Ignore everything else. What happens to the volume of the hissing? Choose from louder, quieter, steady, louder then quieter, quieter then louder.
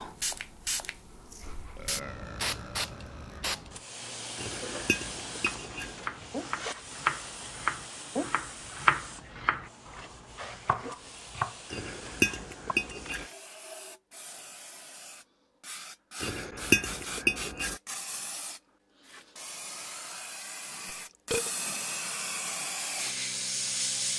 quieter then louder.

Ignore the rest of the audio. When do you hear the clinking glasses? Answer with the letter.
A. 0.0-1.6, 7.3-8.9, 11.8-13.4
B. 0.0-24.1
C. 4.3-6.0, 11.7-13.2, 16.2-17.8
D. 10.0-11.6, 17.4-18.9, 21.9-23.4
C.